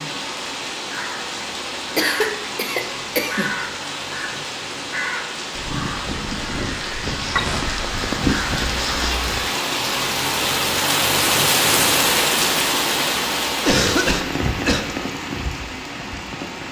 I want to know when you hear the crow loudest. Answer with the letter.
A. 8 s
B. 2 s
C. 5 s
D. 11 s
A.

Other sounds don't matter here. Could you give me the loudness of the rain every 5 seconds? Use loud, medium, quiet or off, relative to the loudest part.
medium, medium, loud, medium.